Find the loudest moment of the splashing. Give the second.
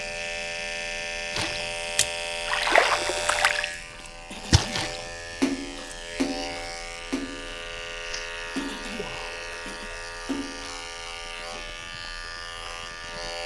3 s.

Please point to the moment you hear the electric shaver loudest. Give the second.
3 s.